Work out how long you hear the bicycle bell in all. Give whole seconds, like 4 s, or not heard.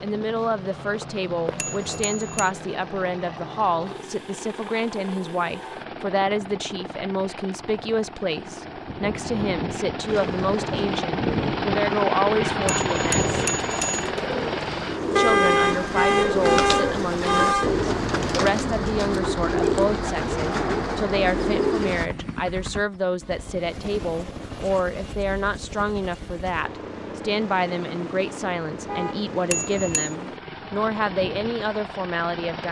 3 s.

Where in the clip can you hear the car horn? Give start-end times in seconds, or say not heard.
1.4-1.9, 15.2-17.7, 28.9-29.3.